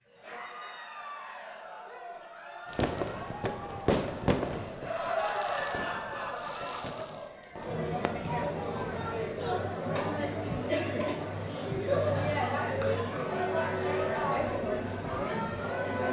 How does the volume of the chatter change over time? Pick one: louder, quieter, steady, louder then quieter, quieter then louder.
louder.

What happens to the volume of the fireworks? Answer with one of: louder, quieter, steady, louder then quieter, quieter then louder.
quieter.